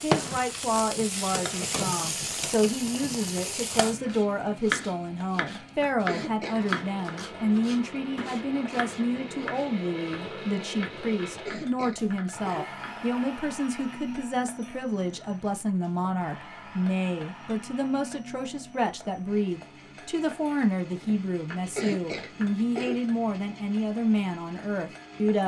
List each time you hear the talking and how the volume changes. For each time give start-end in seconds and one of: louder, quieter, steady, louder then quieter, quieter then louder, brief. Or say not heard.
0.0-25.4 steady.